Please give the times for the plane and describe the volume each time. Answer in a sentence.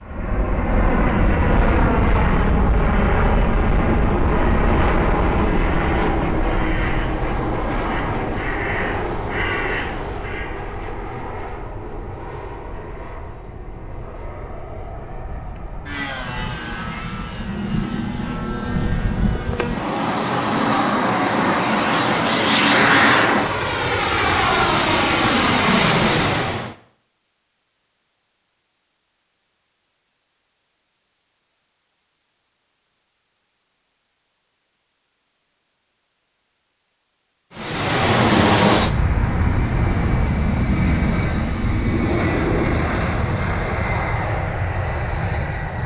You can hear the plane from 0.0 to 26.8 s, getting quieter then louder; and from 37.5 to 45.8 s, getting quieter.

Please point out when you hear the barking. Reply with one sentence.
The barking can't be heard in this clip.